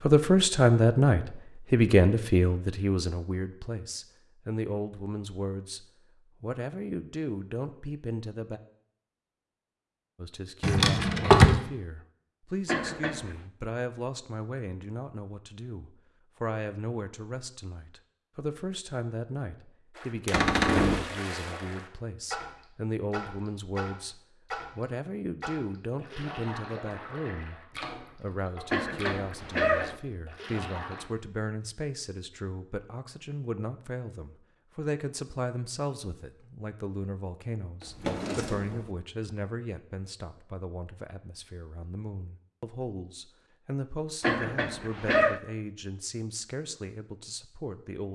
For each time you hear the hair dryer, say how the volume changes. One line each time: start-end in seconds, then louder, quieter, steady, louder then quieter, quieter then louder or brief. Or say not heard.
not heard.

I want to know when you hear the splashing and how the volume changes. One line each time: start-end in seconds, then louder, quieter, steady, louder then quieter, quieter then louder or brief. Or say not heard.
19.9-31.1 quieter.